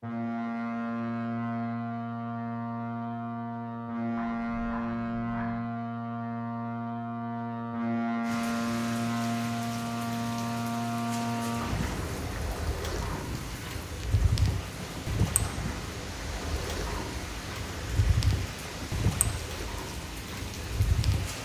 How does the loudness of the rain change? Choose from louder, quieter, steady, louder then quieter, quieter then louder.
steady.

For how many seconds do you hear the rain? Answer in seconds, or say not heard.
13 s.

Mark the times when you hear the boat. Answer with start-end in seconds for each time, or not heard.
0.0-21.4.